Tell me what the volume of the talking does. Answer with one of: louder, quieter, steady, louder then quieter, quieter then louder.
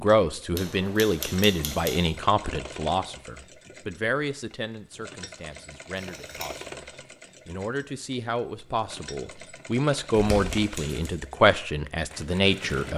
quieter then louder.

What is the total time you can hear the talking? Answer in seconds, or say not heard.
13 s.